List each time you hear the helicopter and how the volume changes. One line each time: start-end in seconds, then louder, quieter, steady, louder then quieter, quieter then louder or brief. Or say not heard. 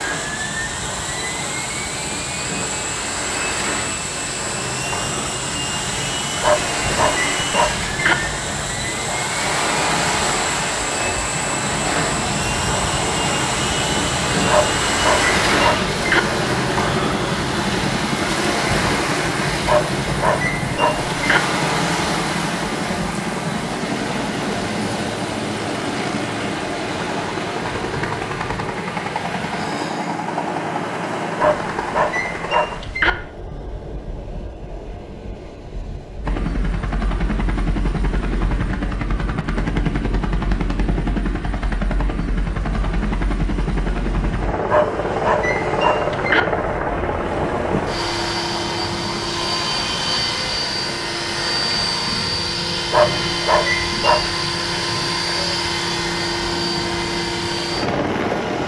0.0-32.8 steady
36.2-58.6 steady.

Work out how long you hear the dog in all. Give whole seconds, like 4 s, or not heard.
10 s.